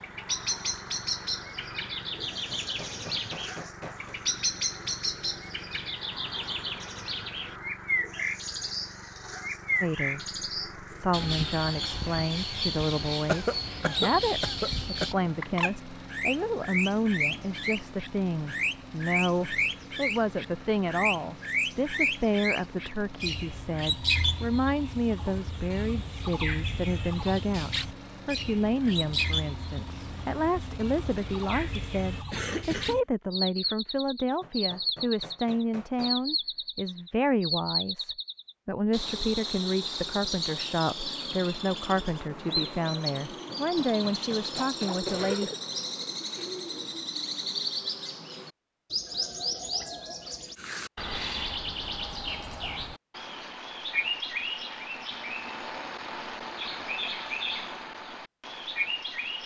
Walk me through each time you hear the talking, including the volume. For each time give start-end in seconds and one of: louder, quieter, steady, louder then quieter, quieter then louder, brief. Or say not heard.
9.8-45.5 steady.